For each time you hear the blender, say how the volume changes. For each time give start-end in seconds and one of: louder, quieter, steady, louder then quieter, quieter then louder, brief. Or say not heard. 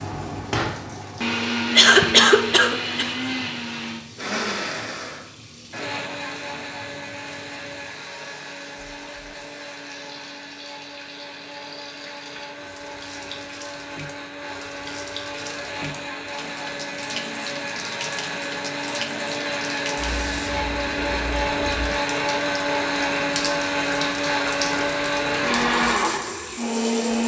0.0-27.2 quieter then louder.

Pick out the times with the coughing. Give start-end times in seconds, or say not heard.
1.8-3.1.